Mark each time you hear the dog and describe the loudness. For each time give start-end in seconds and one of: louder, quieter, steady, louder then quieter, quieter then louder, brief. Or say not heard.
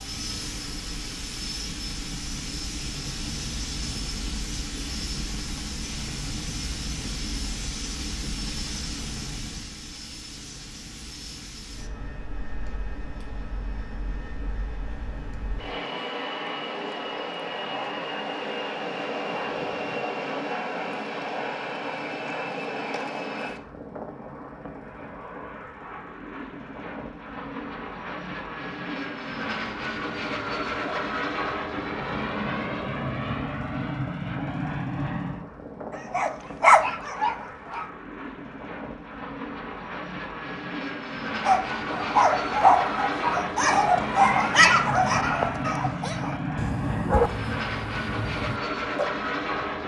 35.9-37.9 brief
41.4-49.1 quieter.